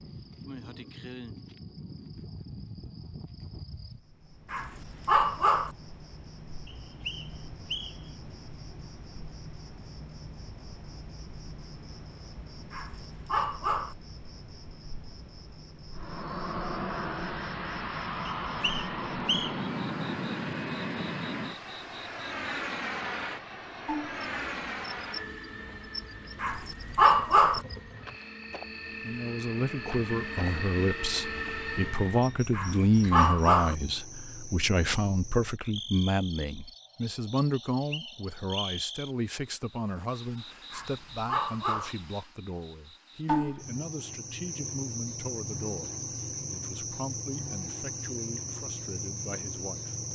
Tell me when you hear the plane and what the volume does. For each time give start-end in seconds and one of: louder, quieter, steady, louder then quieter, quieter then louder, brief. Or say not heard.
15.9-32.4 quieter then louder.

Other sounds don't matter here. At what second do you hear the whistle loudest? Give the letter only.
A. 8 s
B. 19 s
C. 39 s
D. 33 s
B.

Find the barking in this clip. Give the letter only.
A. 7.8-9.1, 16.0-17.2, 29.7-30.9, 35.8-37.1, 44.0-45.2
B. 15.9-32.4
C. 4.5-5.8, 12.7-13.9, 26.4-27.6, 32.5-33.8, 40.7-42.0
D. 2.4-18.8
C.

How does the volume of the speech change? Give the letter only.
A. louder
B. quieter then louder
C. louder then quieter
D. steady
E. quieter
E.